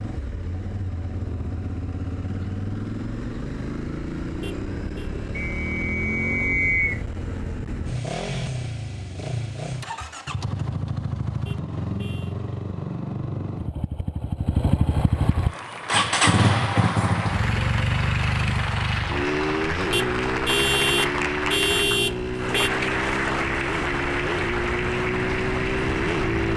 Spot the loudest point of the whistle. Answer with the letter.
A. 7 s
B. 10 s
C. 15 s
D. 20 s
A.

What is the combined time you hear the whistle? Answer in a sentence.
You can hear the whistle for 2 seconds altogether.